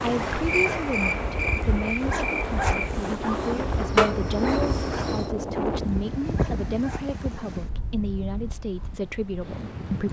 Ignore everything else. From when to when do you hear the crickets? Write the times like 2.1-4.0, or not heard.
0.0-5.3.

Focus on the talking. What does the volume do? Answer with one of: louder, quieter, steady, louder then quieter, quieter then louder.
steady.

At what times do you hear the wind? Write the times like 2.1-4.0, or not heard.
0.0-10.0.